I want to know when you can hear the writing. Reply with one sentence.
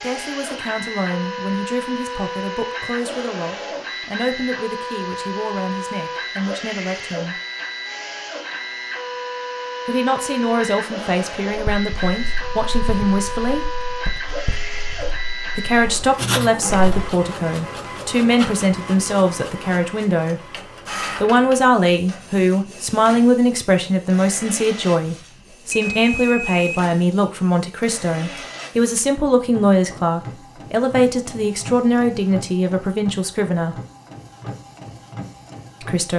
The writing can be heard from 11.5 to 17.1 s.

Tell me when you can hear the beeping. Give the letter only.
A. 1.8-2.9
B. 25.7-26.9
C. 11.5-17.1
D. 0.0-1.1
B.